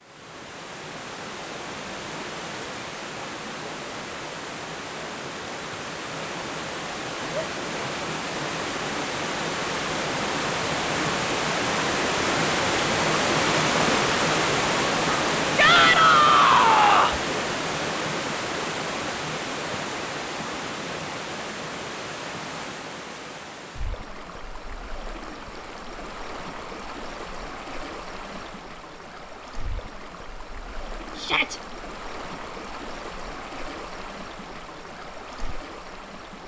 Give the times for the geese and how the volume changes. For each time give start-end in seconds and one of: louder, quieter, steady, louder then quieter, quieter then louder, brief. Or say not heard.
not heard.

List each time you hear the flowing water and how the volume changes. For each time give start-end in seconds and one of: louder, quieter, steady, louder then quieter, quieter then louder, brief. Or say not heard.
0.0-36.4 louder then quieter.